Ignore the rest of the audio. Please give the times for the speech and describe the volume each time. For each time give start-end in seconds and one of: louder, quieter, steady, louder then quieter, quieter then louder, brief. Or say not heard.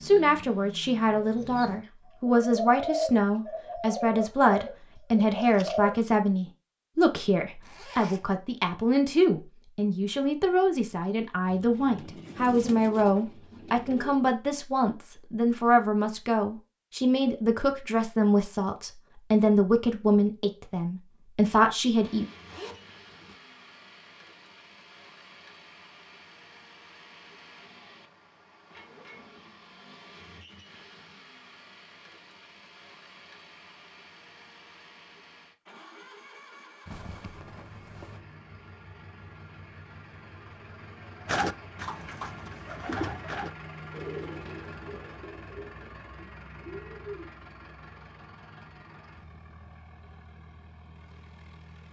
0.0-22.2 steady.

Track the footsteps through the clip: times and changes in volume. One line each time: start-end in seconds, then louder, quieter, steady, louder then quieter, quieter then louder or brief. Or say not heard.
not heard.